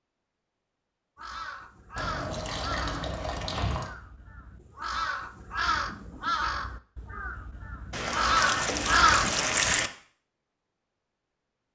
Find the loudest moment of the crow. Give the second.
9 s.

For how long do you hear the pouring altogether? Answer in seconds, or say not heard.
4 s.